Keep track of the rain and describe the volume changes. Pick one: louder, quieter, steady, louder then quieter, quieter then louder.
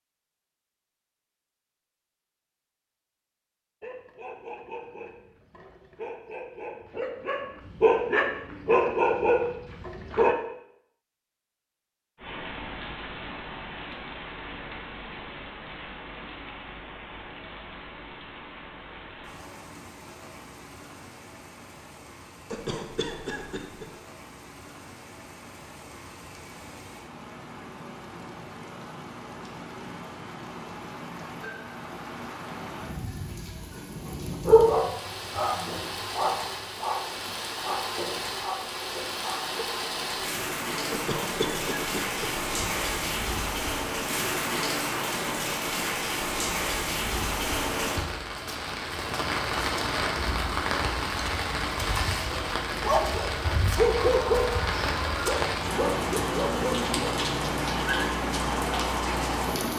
louder.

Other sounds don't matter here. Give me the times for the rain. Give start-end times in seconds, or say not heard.
12.2-59.7.